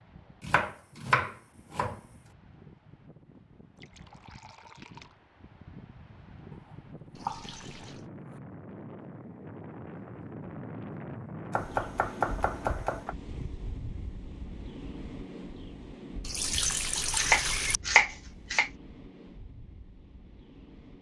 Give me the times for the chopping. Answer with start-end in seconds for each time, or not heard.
0.4-2.0, 6.7-8.4, 11.5-13.2, 17.1-18.7.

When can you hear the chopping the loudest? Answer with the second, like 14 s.
18 s.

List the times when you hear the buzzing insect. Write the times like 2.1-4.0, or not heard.
not heard.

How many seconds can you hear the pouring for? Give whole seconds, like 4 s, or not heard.
4 s.